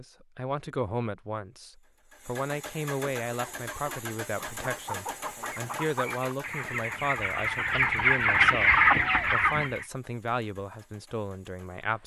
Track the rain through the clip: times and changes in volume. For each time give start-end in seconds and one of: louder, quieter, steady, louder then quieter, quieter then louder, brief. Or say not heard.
not heard.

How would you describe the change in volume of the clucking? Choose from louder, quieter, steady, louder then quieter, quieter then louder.
louder.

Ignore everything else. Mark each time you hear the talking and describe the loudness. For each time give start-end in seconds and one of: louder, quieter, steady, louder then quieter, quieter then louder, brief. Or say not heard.
0.0-12.0 steady.